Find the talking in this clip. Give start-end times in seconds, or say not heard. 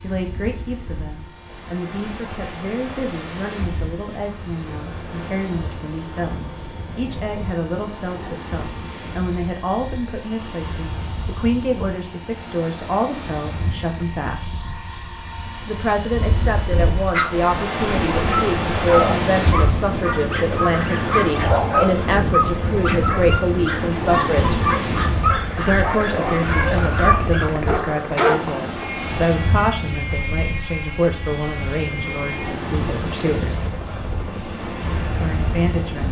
0.0-14.6, 15.7-24.6, 25.5-33.6, 35.1-36.0.